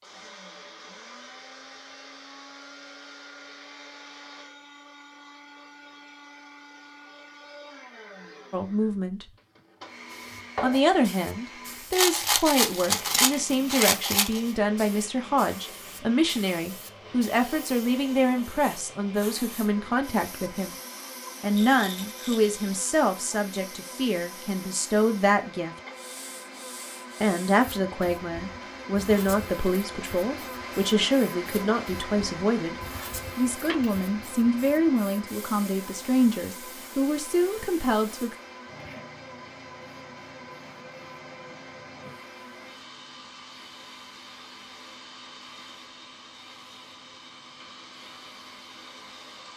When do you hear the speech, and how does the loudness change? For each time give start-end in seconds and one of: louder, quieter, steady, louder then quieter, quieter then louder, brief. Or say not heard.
8.5-9.2 brief
10.6-20.8 steady
21.4-25.8 quieter then louder
27.2-38.4 steady.